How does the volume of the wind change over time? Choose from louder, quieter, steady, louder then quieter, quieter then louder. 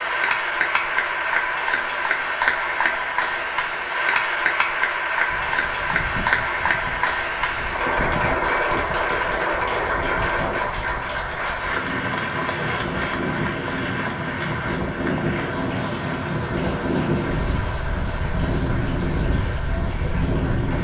louder.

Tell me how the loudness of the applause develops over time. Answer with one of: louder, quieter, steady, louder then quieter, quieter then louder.
quieter.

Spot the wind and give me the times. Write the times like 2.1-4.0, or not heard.
5.2-20.7.